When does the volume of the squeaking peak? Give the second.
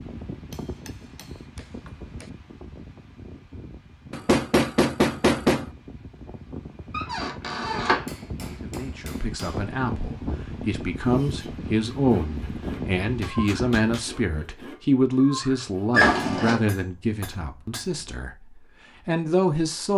16 s.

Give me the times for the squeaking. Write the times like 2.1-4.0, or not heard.
6.9-8.1, 15.9-16.6.